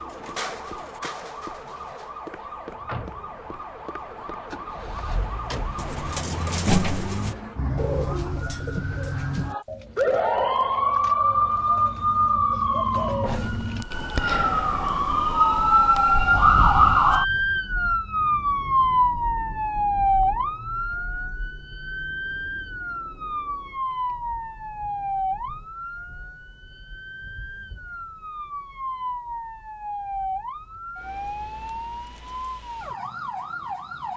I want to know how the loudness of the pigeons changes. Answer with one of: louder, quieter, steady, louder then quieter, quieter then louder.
quieter then louder.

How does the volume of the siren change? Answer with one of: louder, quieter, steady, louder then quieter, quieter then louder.
louder then quieter.